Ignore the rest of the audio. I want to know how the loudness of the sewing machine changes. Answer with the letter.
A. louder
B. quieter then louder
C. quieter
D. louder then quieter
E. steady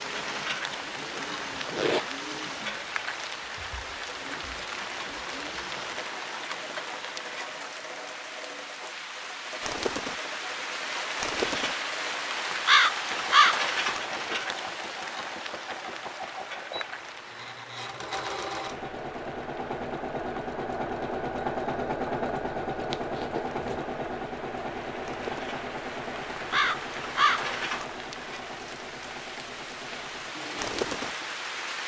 D.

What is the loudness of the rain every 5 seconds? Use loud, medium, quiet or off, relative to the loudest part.
medium, medium, loud, quiet, quiet, medium, medium.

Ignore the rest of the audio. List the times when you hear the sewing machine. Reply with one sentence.
The sewing machine can be heard from 0.0 to 31.6 s.